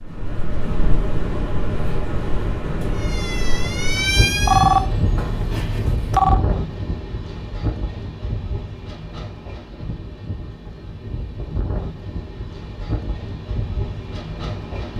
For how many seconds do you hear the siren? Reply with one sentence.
You can hear the siren for 2 seconds altogether.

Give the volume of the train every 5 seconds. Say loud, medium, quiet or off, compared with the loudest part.
loud, loud, medium.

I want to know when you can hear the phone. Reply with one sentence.
The phone can be heard from 4.5 to 6.4 s.